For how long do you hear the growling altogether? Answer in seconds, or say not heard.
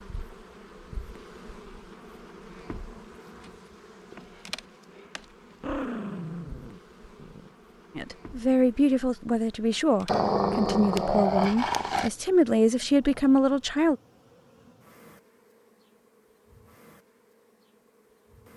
4 s.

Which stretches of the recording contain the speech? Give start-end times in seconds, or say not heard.
8.0-13.9.